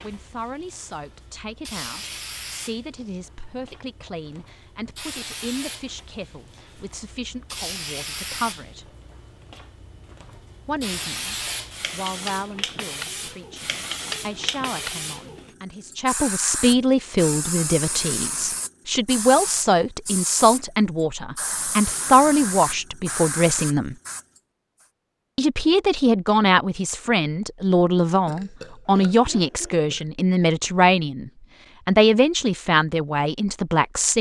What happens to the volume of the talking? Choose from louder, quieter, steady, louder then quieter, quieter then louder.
louder.